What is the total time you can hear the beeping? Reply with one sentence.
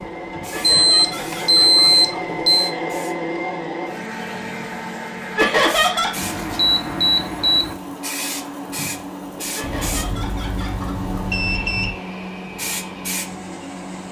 You can hear the beeping for 6 seconds altogether.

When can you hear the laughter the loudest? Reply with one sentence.
The loudest moment of the laughter is at 6 seconds.